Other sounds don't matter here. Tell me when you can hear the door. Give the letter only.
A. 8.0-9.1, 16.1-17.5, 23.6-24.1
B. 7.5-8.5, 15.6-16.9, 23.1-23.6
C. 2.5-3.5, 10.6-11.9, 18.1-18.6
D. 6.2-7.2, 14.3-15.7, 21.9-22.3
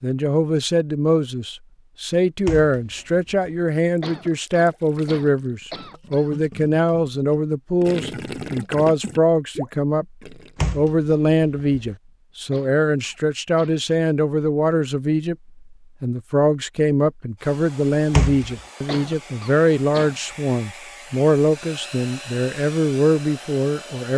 C.